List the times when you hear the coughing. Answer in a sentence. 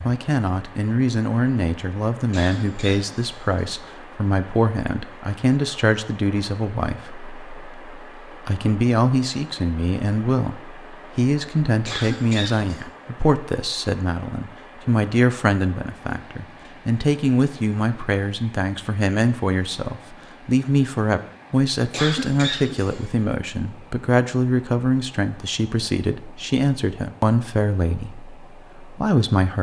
You can hear the coughing from 2.3 to 3.6 s, from 11.8 to 12.8 s and from 21.9 to 23.1 s.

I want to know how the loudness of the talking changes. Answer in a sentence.
The volume of the talking stays about the same.